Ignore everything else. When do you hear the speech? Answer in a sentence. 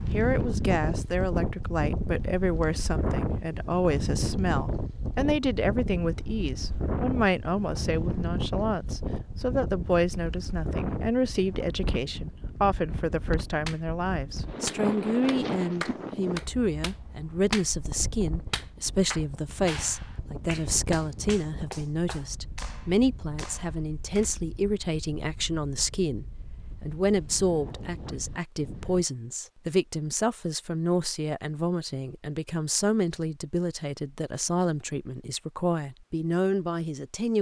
You can hear the speech from 0.0 to 37.3 s.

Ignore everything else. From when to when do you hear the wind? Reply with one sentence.
The wind can be heard from 0.0 to 29.1 s.